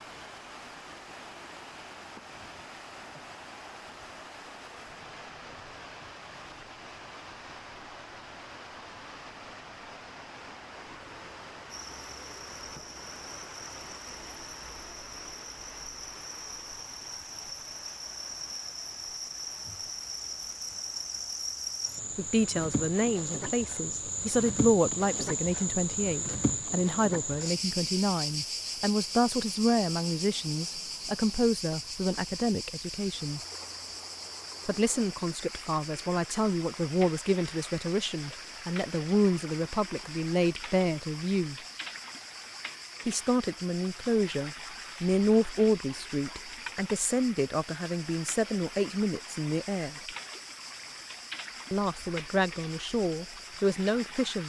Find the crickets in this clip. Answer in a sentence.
You can hear the crickets from 11.7 to 54.4 s.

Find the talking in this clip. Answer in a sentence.
You can hear the talking from 22.1 to 33.4 s, from 34.6 to 41.5 s, from 43.0 to 50.0 s and from 51.7 to 54.4 s.